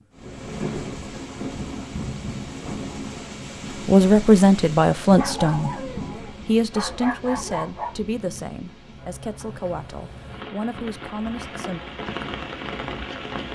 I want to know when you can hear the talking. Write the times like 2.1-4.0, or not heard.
3.9-11.8.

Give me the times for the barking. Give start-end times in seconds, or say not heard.
5.2-8.0.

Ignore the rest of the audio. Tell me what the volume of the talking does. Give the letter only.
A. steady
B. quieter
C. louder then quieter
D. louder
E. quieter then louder
B.